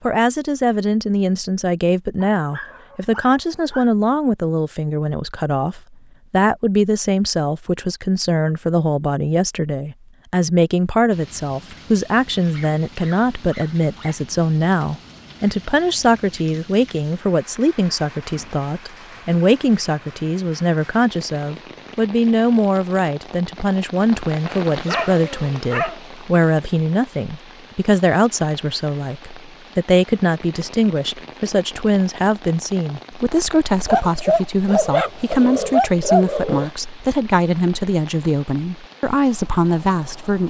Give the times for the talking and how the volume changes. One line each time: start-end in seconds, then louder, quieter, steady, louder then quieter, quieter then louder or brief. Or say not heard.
0.0-40.4 steady.